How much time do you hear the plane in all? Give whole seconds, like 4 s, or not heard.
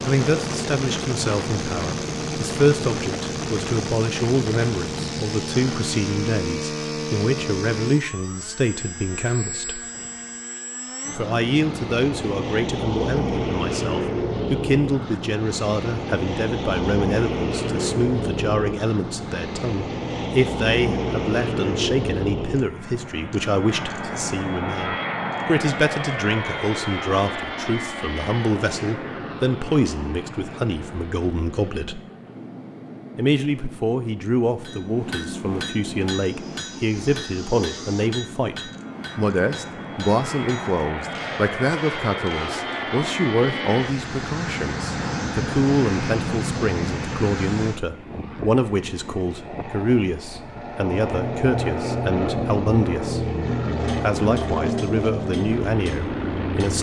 57 s.